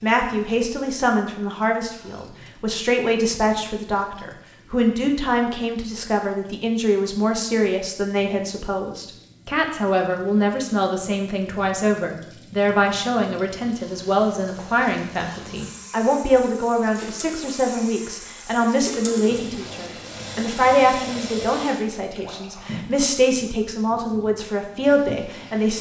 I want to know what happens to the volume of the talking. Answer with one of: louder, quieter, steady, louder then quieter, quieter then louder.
steady.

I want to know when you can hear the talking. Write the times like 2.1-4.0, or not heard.
0.0-25.7.